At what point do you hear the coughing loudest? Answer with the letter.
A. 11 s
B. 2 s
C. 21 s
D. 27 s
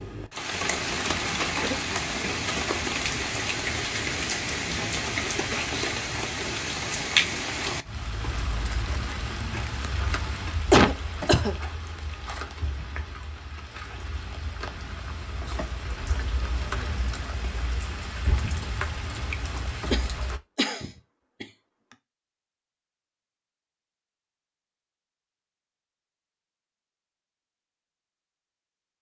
A.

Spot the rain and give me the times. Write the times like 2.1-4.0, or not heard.
0.0-20.4.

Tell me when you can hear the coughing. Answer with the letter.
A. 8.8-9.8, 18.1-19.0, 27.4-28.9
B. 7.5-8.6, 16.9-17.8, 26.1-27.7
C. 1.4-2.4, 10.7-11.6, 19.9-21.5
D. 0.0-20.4
C.